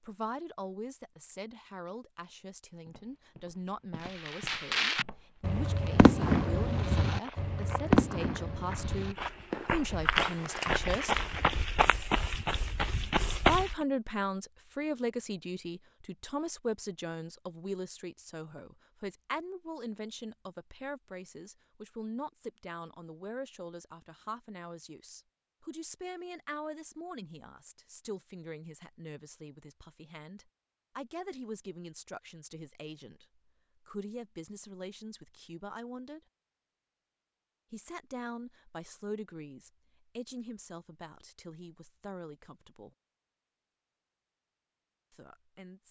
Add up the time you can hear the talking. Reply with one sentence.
The talking can be heard for 40 seconds in total.